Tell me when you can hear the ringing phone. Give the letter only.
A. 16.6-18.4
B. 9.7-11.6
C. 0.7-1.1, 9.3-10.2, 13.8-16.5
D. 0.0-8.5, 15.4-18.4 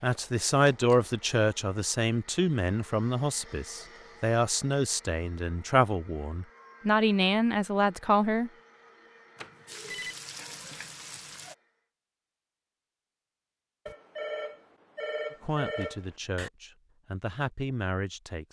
C.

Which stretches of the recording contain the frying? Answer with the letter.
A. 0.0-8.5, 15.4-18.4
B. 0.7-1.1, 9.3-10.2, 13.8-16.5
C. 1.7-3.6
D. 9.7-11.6
D.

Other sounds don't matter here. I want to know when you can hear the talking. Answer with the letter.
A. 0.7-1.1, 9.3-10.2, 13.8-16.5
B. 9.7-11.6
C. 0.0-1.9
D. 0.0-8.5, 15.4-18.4
D.